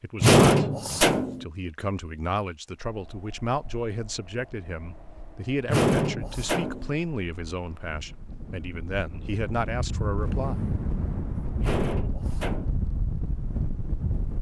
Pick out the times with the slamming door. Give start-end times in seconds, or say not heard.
0.2-1.4, 5.7-7.0, 11.6-12.8.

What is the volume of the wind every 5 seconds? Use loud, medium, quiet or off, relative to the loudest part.
quiet, medium, loud.